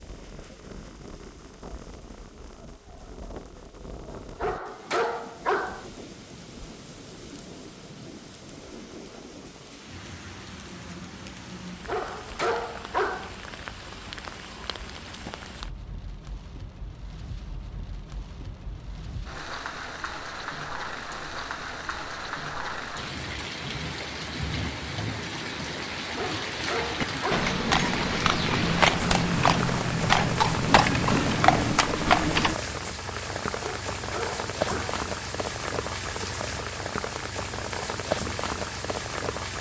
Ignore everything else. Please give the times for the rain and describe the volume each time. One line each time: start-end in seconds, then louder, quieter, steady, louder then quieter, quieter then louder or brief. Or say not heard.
0.0-39.5 louder.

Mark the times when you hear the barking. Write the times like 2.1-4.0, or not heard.
4.4-5.9, 11.8-13.3, 26.1-27.5, 33.6-35.0.